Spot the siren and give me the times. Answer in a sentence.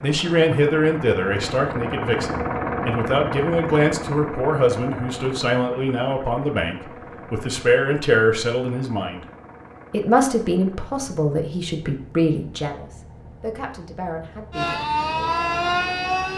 You can hear the siren from 14.5 to 16.3 s.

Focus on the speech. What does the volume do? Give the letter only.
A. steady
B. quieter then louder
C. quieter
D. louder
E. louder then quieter
C.